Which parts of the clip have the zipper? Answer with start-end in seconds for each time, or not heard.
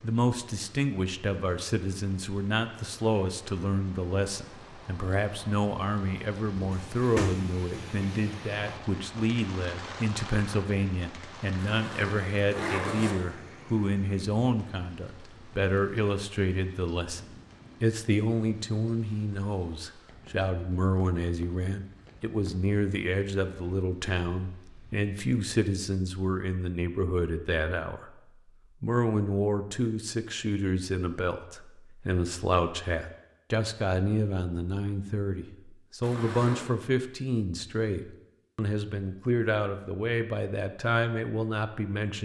11.6-13.2, 36.0-36.8.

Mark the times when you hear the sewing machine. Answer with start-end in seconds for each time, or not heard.
not heard.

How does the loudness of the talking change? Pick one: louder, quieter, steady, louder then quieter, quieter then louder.
steady.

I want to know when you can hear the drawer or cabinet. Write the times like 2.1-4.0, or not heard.
6.7-8.1.